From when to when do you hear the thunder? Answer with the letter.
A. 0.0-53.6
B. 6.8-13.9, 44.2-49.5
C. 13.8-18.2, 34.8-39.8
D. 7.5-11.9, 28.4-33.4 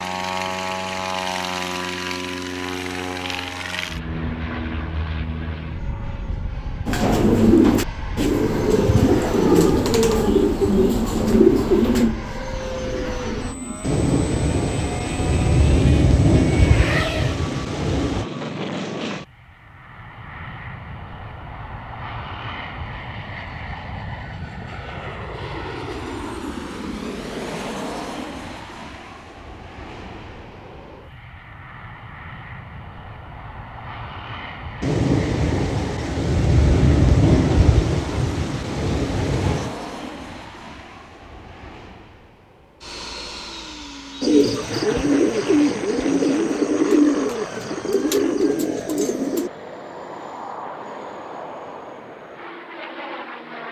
C.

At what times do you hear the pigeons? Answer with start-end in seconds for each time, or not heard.
6.8-13.9, 44.2-49.5.